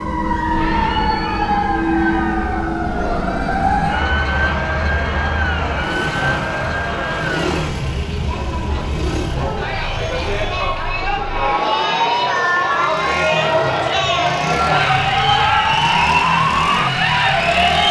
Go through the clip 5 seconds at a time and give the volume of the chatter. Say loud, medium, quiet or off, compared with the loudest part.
medium, medium, loud, loud.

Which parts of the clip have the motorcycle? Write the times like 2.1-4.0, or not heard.
3.0-17.8.